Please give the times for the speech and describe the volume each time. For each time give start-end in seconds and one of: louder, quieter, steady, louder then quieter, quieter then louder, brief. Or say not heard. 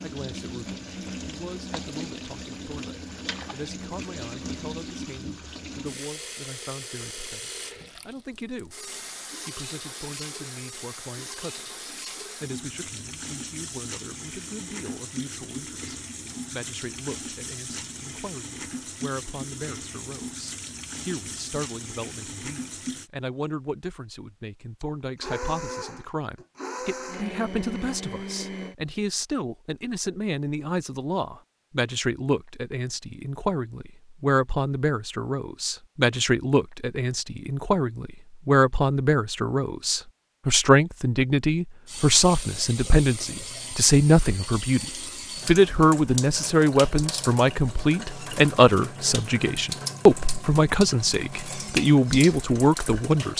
0.0-53.3 louder.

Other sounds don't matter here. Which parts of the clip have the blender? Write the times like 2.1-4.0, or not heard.
25.1-28.8.